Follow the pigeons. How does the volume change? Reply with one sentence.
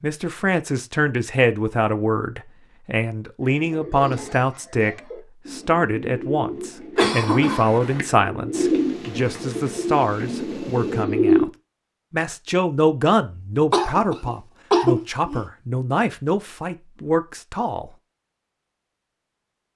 The volume of the pigeons goes up.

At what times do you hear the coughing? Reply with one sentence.
You can hear the coughing from 7.0 to 8.1 s and from 13.7 to 15.4 s.